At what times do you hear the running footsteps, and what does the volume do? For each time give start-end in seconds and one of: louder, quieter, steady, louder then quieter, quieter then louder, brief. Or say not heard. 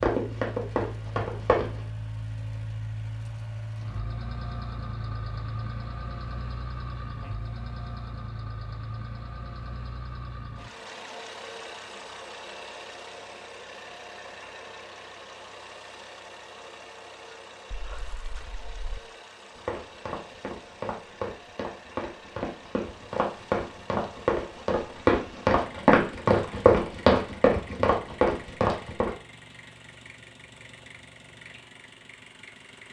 0.0-1.8 brief
19.6-29.1 louder.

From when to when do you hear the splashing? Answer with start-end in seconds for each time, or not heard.
17.7-19.0.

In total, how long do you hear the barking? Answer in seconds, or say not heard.
not heard.